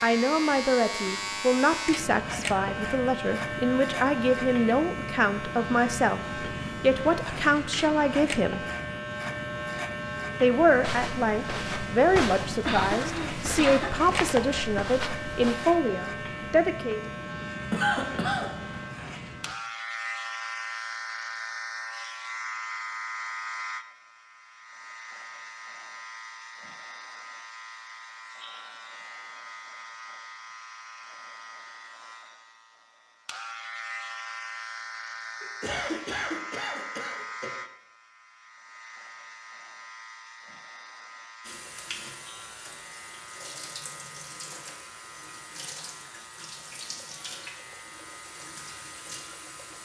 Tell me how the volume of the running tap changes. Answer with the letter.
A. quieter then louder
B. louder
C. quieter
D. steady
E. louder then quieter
D.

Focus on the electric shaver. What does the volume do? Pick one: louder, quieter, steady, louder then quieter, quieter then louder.
quieter.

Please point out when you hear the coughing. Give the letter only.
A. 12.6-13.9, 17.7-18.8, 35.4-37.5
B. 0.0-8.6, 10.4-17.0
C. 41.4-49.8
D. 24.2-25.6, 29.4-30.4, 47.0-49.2
A.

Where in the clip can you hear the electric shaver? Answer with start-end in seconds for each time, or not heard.
0.0-49.8.